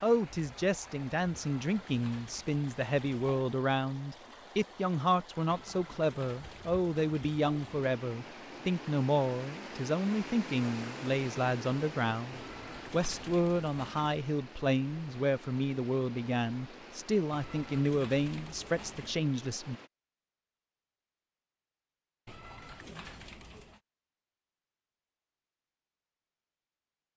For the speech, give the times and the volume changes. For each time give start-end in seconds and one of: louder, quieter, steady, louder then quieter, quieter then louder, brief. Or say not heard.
0.0-19.8 steady.